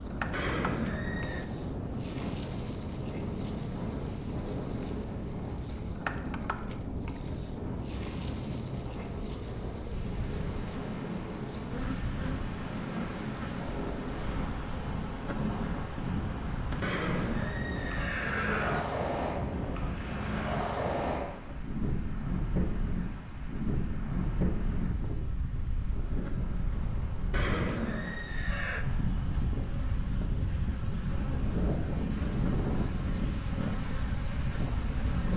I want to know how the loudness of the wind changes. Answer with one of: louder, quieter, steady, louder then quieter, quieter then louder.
steady.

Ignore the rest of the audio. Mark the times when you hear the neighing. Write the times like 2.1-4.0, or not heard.
0.3-1.4, 16.8-18.9, 27.3-28.9.